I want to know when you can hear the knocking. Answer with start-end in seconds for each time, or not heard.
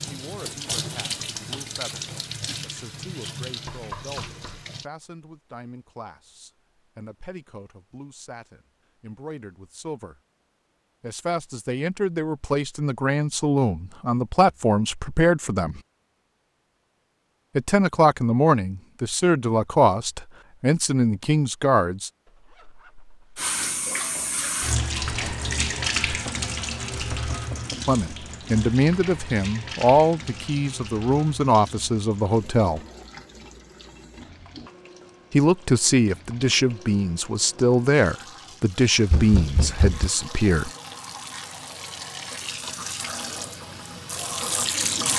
3.6-4.7, 26.1-27.9, 39.1-40.1.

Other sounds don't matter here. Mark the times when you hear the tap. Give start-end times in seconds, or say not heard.
0.0-4.8, 23.4-45.1.